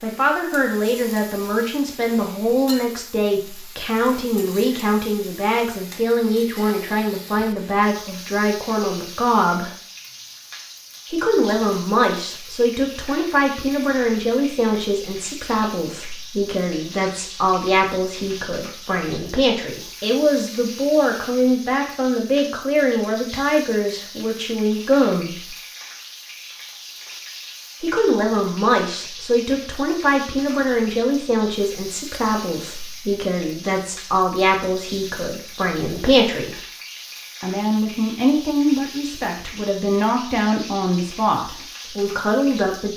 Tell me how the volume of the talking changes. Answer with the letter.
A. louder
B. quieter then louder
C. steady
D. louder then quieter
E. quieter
C.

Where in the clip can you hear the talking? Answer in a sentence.
The talking can be heard from 0.0 to 9.7 s, from 11.1 to 25.6 s, from 27.8 to 36.6 s and from 37.4 to 42.9 s.